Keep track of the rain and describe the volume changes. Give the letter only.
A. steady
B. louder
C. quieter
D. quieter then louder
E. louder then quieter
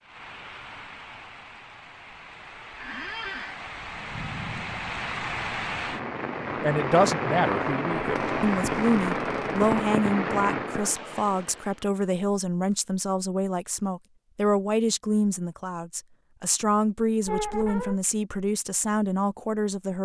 B.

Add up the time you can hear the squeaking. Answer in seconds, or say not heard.
3 s.